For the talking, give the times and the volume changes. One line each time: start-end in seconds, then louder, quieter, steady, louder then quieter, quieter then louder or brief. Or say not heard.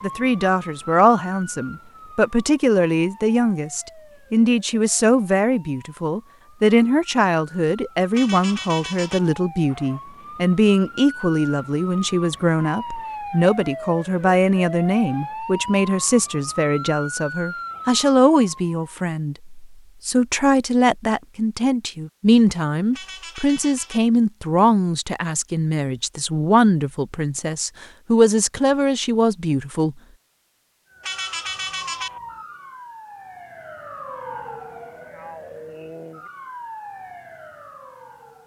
0.0-29.9 steady.